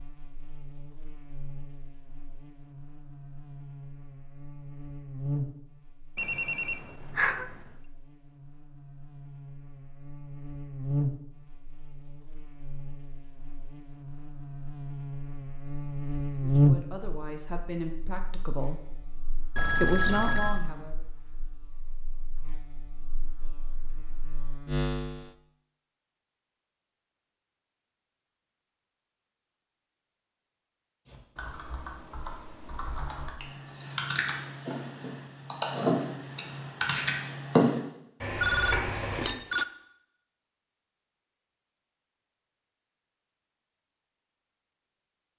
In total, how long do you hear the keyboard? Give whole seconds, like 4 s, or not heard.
8 s.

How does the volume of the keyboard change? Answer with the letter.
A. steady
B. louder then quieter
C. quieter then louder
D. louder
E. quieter
D.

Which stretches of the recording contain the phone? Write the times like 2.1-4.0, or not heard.
6.2-7.5, 19.6-20.6, 38.4-39.6.